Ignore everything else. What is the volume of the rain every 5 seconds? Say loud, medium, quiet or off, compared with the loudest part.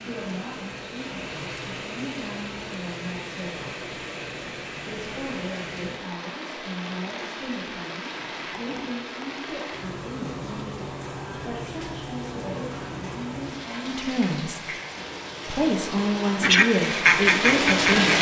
medium, medium, medium, loud.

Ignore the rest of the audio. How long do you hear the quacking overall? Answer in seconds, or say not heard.
2 s.